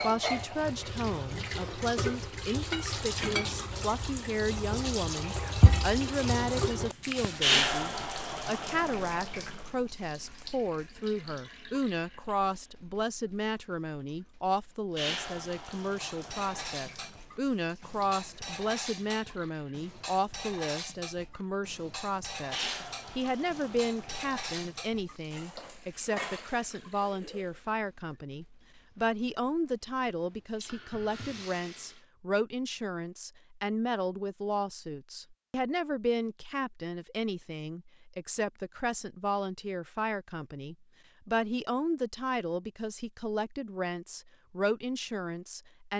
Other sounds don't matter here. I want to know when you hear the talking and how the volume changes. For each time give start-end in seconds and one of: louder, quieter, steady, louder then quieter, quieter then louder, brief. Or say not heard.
0.0-45.9 steady.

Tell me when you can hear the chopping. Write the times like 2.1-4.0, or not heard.
not heard.